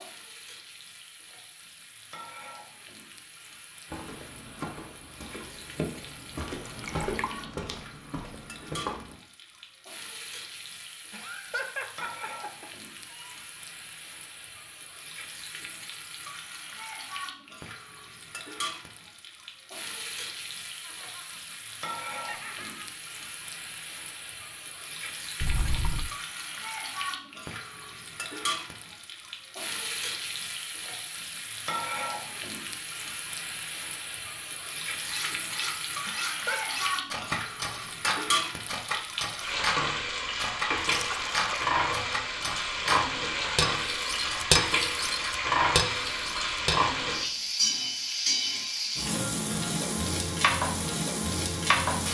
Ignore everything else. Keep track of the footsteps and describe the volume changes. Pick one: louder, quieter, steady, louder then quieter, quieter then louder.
louder then quieter.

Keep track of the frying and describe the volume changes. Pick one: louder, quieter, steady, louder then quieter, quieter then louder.
louder.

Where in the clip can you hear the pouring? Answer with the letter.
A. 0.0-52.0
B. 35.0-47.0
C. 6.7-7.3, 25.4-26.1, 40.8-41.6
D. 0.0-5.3
C.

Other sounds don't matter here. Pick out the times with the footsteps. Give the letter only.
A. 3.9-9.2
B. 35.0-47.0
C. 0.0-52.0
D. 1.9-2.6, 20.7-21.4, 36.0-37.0
A.